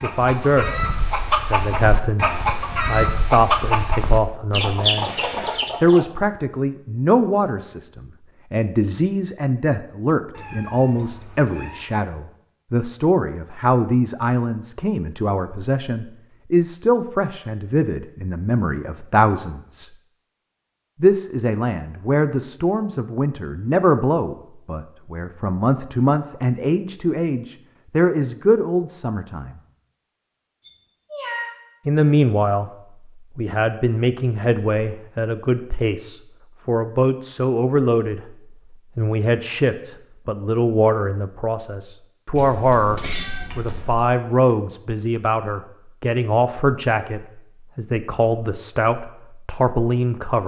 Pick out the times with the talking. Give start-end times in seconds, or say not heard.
0.0-5.1, 5.8-19.9, 21.0-29.6, 31.9-32.7, 33.4-38.3, 39.0-50.4.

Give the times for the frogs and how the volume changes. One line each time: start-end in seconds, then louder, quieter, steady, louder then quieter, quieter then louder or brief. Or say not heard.
not heard.